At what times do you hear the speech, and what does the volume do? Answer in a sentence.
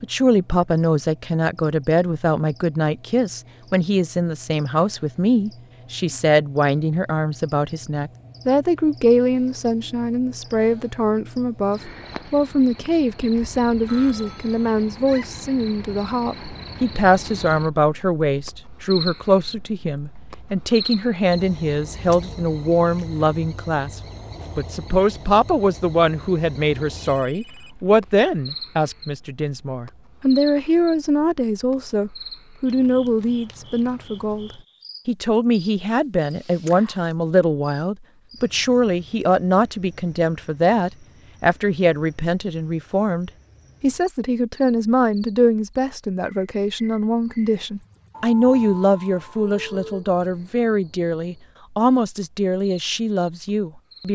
You can hear the speech from 0.0 to 54.0 s, at a steady volume.